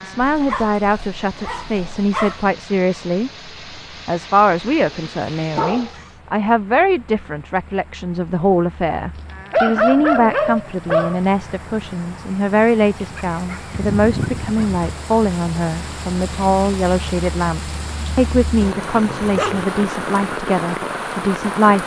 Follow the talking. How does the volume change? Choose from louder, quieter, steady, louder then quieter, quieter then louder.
steady.